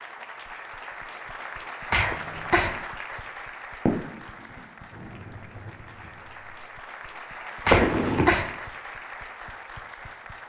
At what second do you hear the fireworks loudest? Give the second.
8 s.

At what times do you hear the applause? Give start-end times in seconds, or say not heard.
0.0-10.4.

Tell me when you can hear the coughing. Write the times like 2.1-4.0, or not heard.
1.9-2.8, 7.7-8.6.